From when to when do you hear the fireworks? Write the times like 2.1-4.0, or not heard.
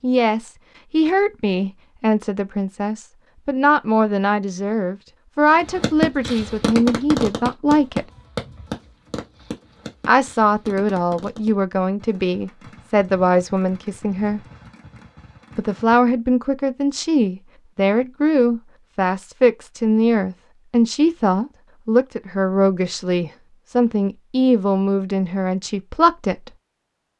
5.5-16.0.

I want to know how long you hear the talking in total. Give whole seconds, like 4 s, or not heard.
23 s.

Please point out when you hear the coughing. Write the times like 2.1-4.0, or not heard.
not heard.